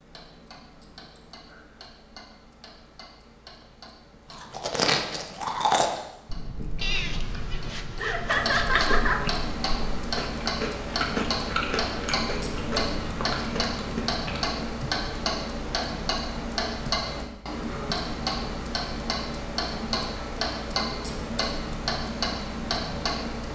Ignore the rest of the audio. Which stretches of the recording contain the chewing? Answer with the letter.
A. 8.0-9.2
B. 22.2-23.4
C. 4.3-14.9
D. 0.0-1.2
C.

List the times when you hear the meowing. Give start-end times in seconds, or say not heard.
6.8-8.8.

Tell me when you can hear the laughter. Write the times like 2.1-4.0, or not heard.
8.0-9.2.